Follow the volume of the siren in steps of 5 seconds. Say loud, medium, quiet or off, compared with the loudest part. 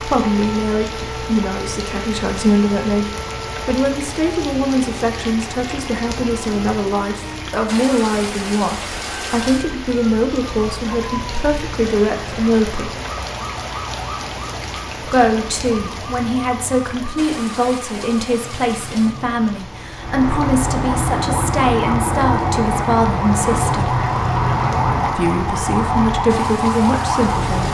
quiet, quiet, quiet, quiet, loud, loud.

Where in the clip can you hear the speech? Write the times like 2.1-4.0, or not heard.
0.0-3.0, 3.6-12.9, 15.0-23.9, 25.1-27.6.